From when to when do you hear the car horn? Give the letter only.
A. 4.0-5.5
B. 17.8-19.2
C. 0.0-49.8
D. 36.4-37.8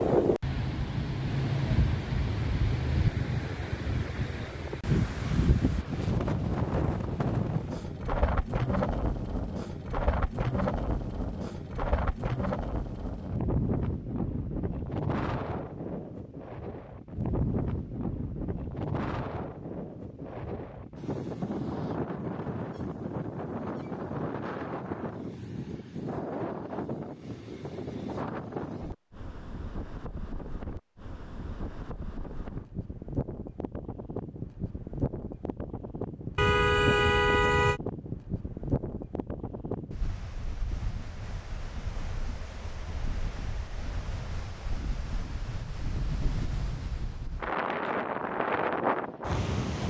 D.